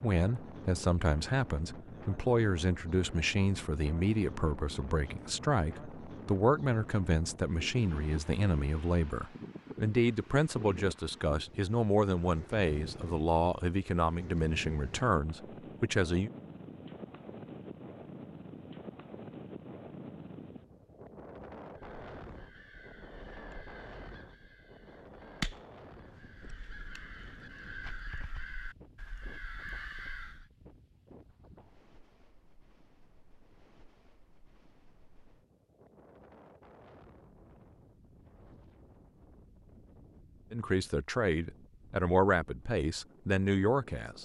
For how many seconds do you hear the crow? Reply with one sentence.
You can hear the crow for 9 seconds altogether.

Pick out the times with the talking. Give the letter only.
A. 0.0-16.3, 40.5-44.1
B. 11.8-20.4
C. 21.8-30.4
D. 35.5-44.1
A.